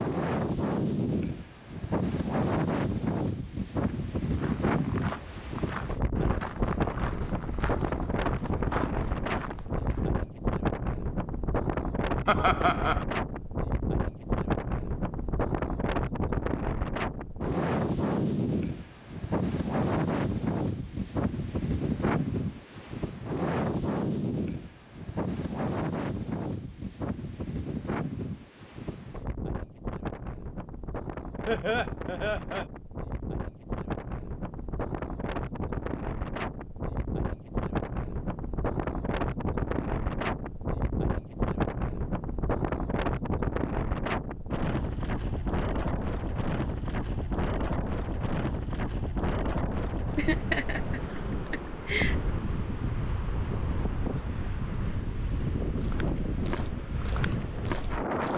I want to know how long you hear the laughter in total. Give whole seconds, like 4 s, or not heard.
4 s.